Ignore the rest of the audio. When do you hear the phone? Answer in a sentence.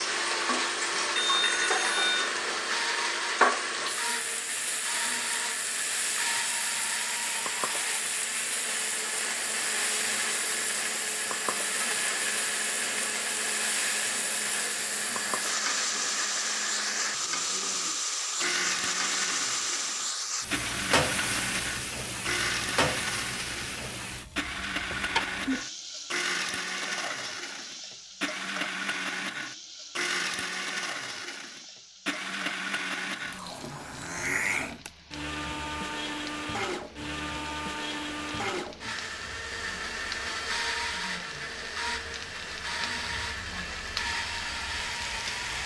The phone can be heard from 1.1 to 2.4 s.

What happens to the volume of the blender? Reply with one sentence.
The loudness of the blender stays about the same.